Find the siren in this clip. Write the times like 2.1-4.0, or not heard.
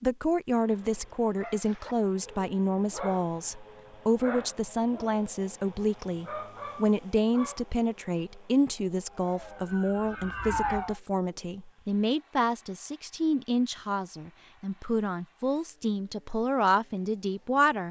9.1-11.0.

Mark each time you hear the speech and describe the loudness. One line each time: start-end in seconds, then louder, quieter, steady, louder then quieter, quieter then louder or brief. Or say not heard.
0.0-17.8 steady.